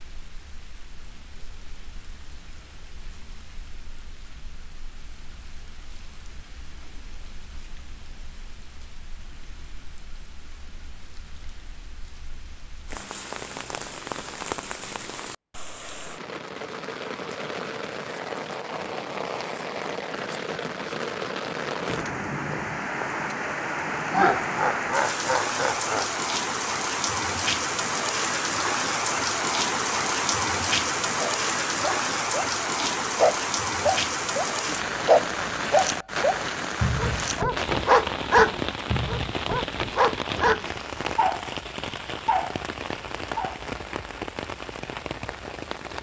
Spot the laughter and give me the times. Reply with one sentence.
The laughter can be heard from 24.1 to 26.1 s.